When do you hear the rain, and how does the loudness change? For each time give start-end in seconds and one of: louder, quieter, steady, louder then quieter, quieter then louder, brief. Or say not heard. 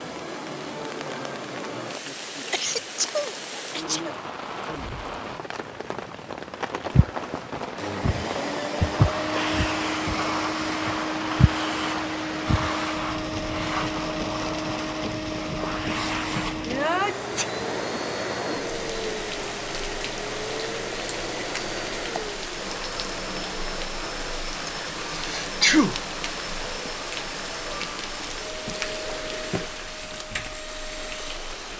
0.0-31.7 steady.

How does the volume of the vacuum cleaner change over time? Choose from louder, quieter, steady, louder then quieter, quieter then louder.
quieter.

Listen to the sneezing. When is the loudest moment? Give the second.
26 s.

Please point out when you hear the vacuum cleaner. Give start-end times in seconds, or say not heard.
7.2-31.7.